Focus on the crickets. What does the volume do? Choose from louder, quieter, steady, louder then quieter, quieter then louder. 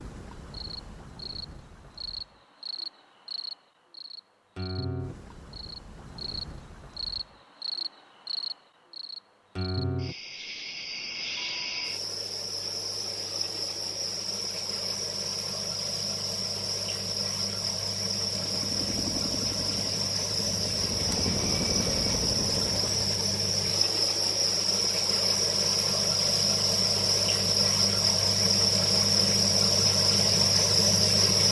louder.